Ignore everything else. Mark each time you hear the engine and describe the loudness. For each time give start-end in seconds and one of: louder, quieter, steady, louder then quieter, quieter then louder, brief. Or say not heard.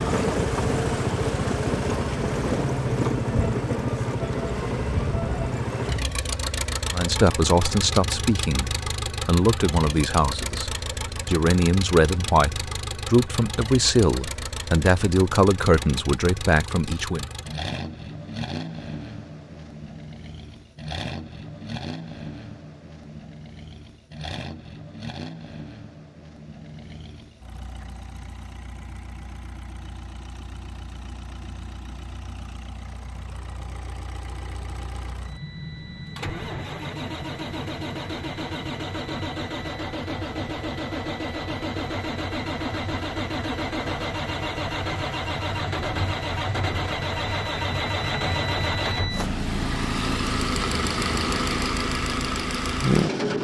0.0-53.3 quieter then louder.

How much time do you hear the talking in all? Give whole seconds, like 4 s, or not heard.
10 s.